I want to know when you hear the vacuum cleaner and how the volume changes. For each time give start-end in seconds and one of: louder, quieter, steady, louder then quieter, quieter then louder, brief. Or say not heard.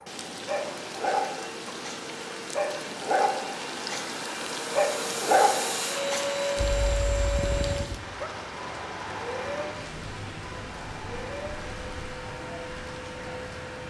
0.0-13.8 louder then quieter.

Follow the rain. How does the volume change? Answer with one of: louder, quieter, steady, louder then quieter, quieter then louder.
steady.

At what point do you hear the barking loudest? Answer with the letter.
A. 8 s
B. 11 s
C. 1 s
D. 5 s
D.